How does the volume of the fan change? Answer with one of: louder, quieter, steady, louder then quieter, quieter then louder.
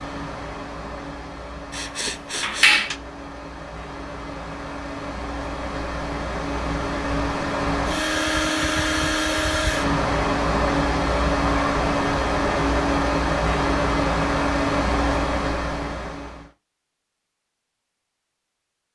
louder.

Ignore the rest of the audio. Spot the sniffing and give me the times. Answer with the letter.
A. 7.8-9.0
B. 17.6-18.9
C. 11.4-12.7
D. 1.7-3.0
D.